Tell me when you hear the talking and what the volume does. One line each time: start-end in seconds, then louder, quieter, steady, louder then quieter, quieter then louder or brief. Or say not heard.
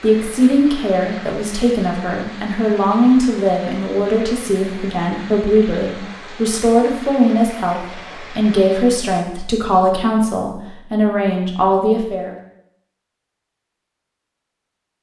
0.0-12.3 steady.